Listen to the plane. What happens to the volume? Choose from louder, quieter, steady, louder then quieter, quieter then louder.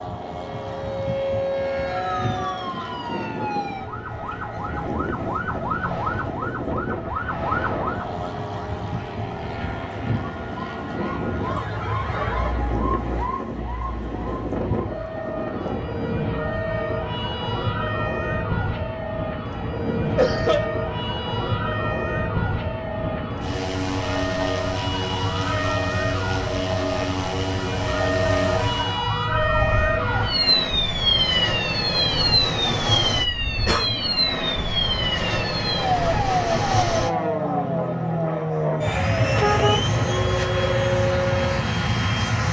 louder.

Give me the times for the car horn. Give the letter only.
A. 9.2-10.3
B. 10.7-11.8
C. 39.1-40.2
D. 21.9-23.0
C.